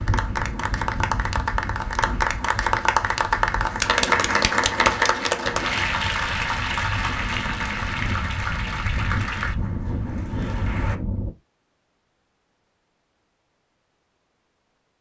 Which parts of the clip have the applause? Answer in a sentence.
You can hear the applause from 0.0 to 11.0 s.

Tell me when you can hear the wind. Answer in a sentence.
You can hear the wind from 0.0 to 11.3 s.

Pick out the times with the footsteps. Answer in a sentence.
The footsteps can't be heard in this clip.